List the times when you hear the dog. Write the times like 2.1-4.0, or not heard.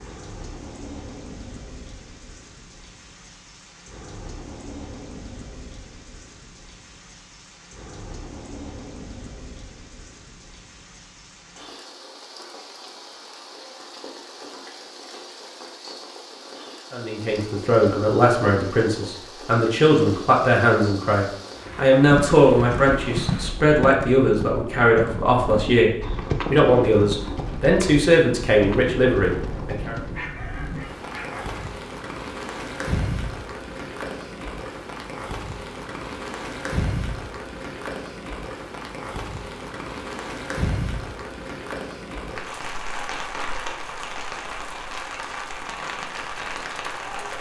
30.1-31.8.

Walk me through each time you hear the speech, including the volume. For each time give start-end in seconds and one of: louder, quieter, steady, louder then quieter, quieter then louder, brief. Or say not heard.
16.9-29.9 steady.